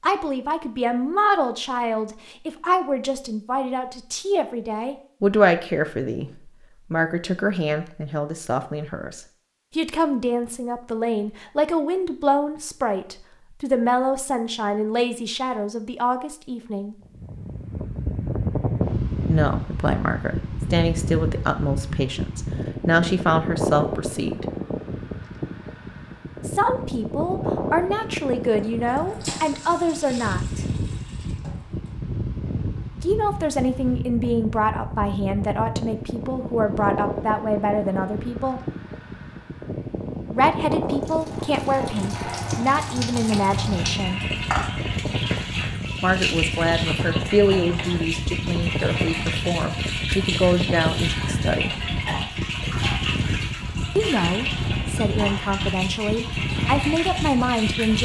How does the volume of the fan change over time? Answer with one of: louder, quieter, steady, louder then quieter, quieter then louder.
steady.